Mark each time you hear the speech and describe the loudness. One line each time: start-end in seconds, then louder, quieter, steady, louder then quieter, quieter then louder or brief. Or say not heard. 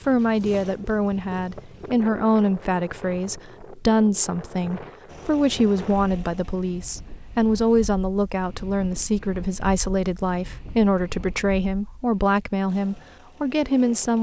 0.0-14.1 steady.